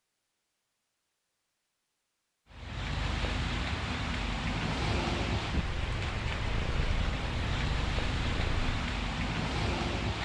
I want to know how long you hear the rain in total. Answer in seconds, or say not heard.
8 s.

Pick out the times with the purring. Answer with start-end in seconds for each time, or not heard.
5.5-8.8.